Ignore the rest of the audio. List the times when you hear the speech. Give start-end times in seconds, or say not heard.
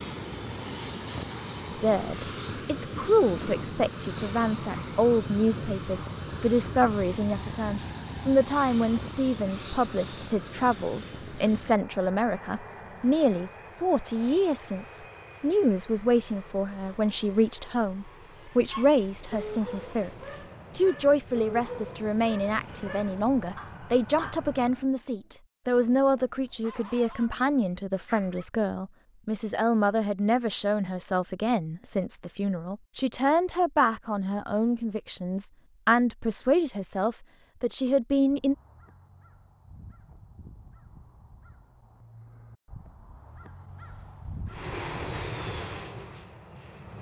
1.7-38.5.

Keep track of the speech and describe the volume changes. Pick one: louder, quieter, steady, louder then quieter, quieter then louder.
steady.